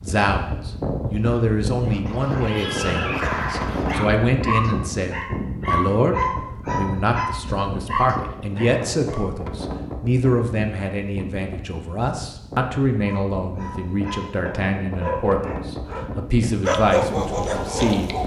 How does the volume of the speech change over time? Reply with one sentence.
The loudness of the speech stays about the same.